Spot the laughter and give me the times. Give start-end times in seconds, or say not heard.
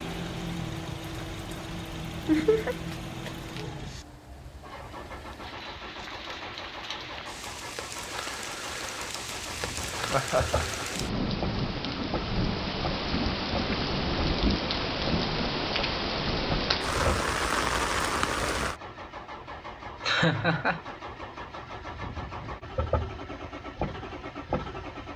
2.2-2.8, 10.1-10.8, 20.1-20.9.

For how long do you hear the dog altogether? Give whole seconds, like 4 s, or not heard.
not heard.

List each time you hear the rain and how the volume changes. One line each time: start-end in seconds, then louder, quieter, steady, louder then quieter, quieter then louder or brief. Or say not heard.
0.0-18.8 louder.